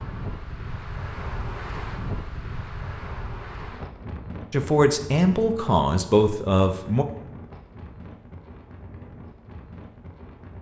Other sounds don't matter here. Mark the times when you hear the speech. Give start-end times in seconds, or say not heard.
4.5-7.0.